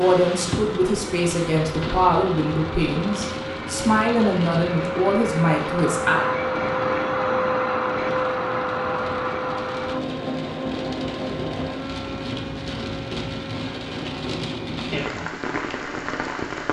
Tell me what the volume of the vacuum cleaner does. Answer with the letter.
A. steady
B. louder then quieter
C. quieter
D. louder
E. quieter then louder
B.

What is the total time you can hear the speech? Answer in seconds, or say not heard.
6 s.